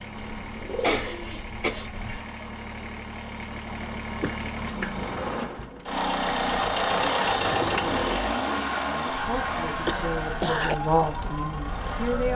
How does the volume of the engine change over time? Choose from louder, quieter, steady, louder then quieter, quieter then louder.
louder then quieter.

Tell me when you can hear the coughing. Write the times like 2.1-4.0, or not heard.
0.8-2.5, 4.2-5.0, 9.8-10.8.